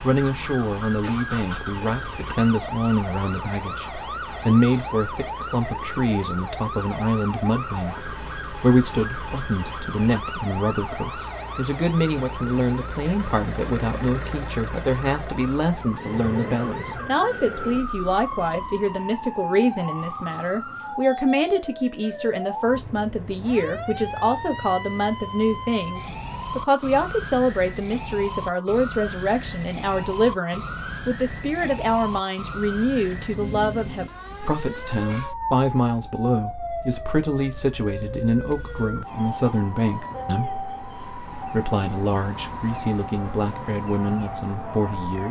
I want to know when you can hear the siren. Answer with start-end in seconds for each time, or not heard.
0.0-45.2.